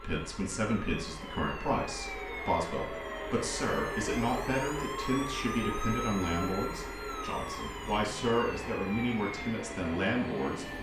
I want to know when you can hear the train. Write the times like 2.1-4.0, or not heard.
0.0-10.7.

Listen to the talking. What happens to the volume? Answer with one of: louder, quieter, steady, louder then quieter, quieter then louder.
steady.